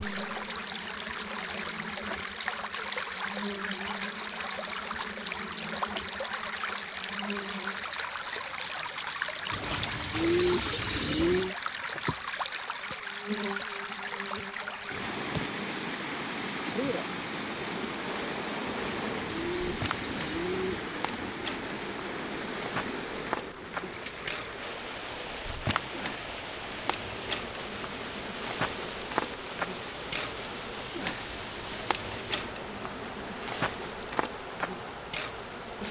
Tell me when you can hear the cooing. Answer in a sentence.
The cooing can be heard from 9.5 to 11.6 s and from 18.6 to 20.9 s.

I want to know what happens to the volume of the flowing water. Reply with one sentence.
The volume of the flowing water goes down.